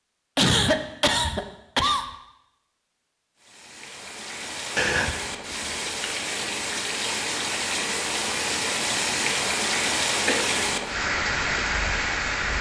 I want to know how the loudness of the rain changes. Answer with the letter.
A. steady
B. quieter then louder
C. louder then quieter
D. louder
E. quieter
D.